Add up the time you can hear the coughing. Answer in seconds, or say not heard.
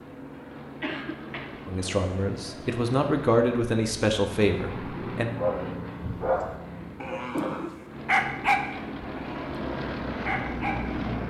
2 s.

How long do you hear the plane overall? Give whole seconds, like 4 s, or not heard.
11 s.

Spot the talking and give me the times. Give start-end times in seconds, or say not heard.
1.6-5.3.